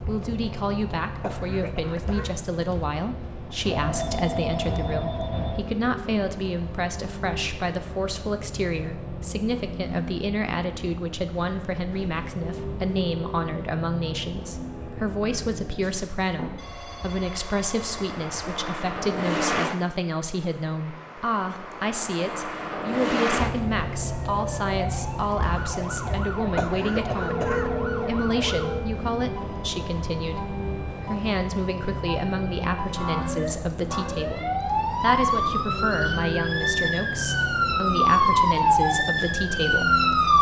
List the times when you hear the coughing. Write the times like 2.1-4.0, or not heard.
1.2-2.4, 26.6-27.7.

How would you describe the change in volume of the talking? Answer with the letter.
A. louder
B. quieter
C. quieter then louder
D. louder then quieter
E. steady
E.